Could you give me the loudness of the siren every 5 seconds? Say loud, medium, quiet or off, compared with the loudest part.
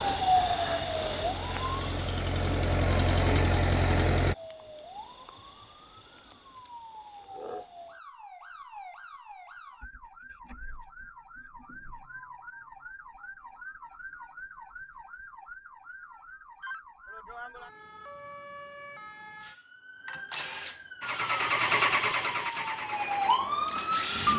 loud, quiet, quiet, quiet, loud.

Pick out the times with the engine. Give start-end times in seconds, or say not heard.
0.0-4.3, 21.0-24.3.